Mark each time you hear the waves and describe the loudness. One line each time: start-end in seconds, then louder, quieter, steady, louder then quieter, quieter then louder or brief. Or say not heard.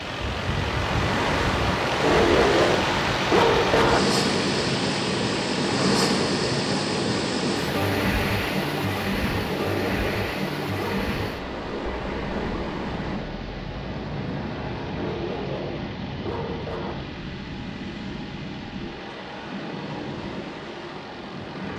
0.0-21.7 quieter.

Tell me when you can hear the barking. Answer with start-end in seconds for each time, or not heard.
2.0-4.0, 9.5-11.2, 14.9-16.9.